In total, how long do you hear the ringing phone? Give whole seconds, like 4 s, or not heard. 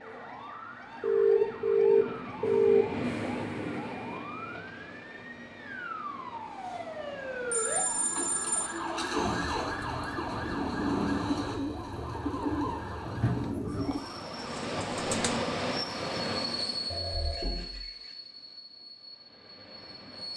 4 s.